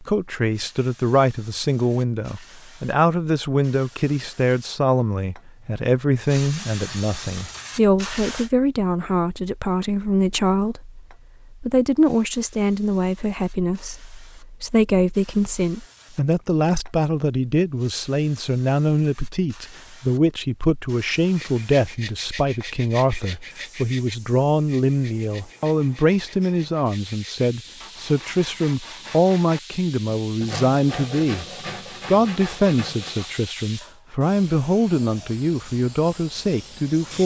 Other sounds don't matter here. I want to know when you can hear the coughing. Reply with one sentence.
You can't hear the coughing here.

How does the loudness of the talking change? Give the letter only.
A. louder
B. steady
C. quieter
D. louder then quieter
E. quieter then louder
B.